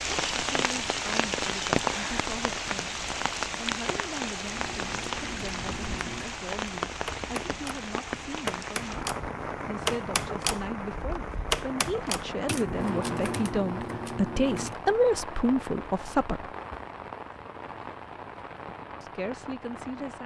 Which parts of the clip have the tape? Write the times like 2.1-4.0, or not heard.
not heard.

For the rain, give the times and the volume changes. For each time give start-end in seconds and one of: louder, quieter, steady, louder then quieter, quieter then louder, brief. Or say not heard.
0.0-20.2 quieter.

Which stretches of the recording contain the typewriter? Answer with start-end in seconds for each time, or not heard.
4.5-14.8.